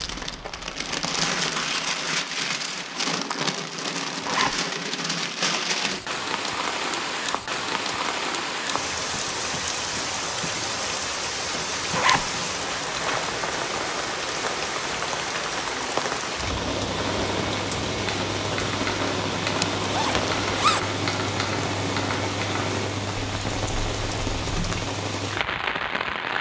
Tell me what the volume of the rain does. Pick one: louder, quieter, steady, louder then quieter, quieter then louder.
steady.